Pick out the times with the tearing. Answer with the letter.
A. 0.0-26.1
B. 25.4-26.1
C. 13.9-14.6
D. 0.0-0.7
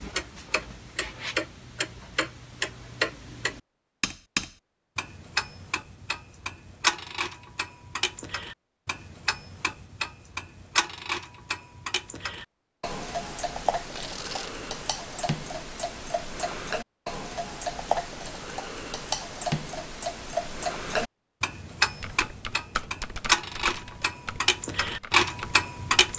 C.